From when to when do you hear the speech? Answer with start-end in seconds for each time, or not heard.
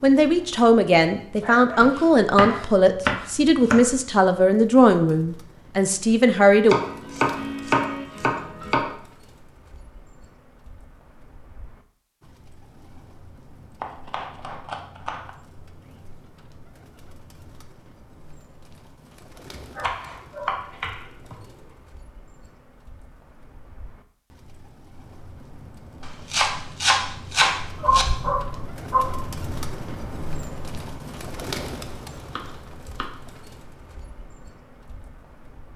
0.0-6.8.